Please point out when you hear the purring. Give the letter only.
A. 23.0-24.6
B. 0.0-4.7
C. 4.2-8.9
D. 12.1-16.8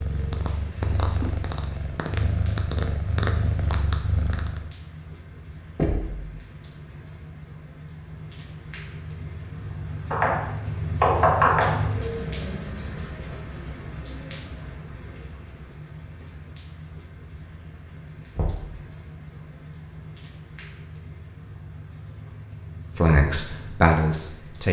B.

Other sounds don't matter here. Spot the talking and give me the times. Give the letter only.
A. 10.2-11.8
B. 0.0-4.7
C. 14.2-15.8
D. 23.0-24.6
D.